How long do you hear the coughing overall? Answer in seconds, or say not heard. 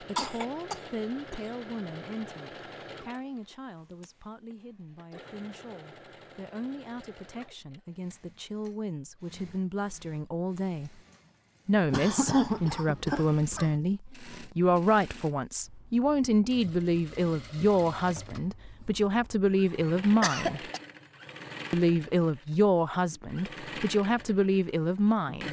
4 s.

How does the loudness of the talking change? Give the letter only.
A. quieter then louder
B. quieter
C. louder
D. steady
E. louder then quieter
C.